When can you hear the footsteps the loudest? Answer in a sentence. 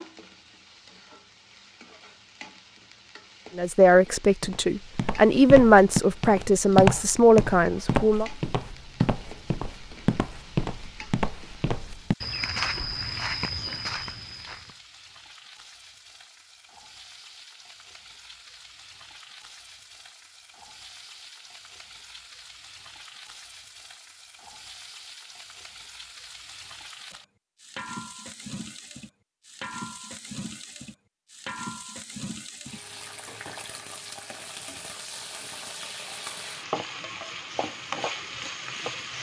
The volume of the footsteps peaks at 7 seconds.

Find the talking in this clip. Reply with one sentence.
The talking can be heard from 3.5 to 8.3 s.